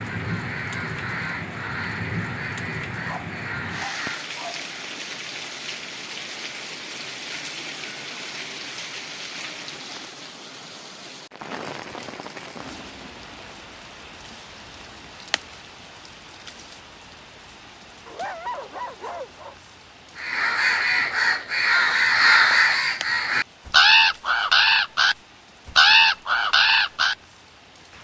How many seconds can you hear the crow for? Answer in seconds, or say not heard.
11 s.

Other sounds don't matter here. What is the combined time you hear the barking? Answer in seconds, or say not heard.
3 s.